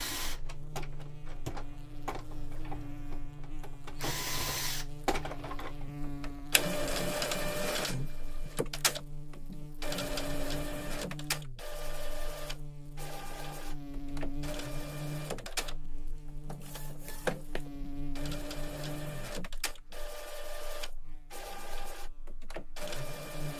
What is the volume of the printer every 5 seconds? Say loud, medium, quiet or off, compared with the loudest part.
medium, loud, medium, medium, medium.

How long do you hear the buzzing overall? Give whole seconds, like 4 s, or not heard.
23 s.